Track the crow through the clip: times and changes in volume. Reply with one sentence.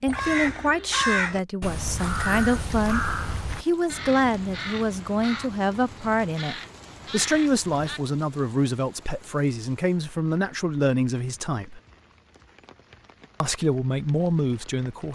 The crow can be heard from 0.1 to 8.0 s, getting quieter.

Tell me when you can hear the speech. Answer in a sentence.
The speech can be heard from 0.0 to 3.0 s, from 3.6 to 11.8 s and from 13.4 to 15.1 s.